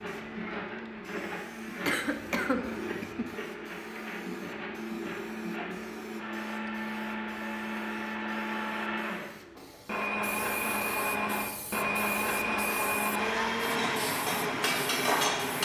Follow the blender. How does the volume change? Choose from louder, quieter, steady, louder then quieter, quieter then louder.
louder.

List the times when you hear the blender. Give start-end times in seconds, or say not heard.
0.0-15.5.